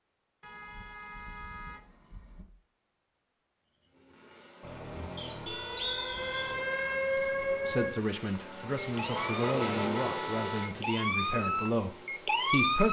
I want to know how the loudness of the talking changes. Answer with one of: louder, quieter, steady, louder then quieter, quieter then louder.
steady.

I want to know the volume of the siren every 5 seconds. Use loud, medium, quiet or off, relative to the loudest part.
off, loud, loud.